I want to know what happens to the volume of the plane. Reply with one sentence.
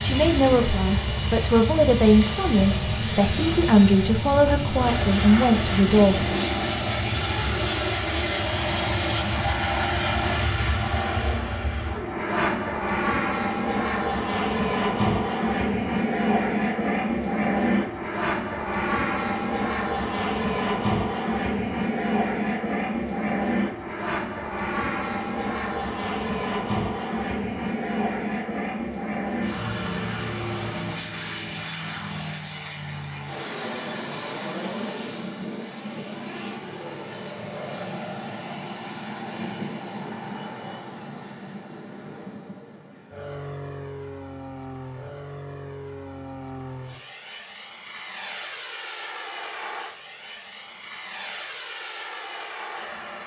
The volume of the plane goes down.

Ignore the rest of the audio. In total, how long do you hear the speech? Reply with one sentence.
You can hear the speech for 6 seconds altogether.